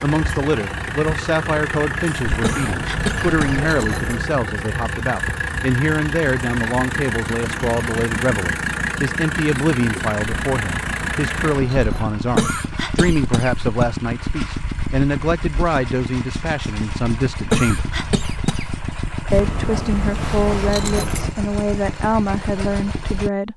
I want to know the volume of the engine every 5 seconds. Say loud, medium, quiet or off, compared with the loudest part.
loud, loud, loud, medium, medium.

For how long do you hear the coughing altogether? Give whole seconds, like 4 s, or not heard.
4 s.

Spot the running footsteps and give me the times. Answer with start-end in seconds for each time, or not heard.
not heard.